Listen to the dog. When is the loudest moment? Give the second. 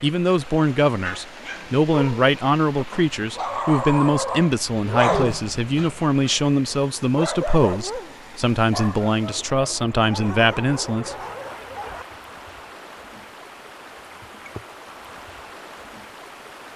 5 s.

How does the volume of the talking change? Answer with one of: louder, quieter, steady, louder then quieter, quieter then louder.
steady.